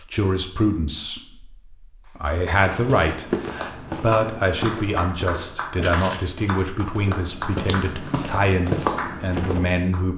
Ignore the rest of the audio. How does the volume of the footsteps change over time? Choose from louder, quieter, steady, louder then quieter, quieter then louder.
quieter then louder.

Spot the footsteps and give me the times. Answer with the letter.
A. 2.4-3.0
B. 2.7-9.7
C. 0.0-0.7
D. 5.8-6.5
B.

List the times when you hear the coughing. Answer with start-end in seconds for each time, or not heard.
5.8-6.5.